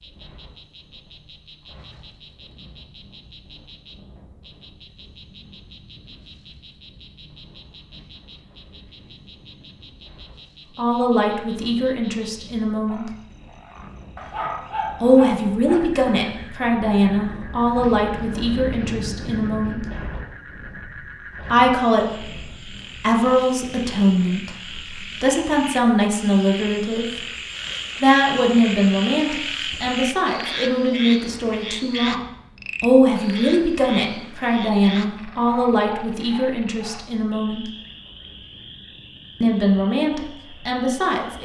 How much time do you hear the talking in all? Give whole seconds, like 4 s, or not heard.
24 s.